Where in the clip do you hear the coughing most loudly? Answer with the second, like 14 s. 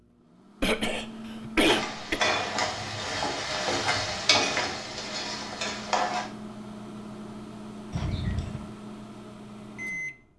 2 s.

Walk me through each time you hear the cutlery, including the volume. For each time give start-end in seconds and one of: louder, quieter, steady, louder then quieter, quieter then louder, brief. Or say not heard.
not heard.